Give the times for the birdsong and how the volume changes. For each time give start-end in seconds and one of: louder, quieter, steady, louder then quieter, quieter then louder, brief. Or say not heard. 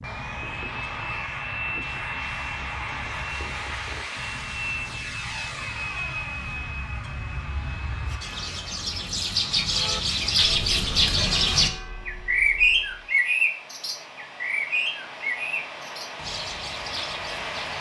0.0-17.7 louder then quieter.